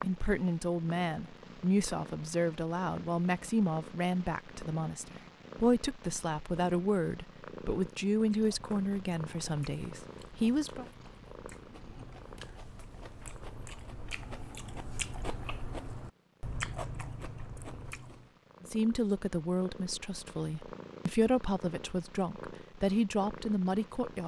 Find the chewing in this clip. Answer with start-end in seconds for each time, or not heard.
8.2-18.4.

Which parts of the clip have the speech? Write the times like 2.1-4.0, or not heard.
0.0-10.8, 18.6-24.2.